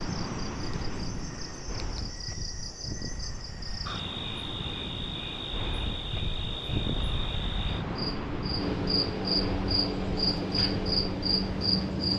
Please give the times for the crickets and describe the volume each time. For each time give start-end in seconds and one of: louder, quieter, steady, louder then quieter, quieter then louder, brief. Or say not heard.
0.0-12.1 louder.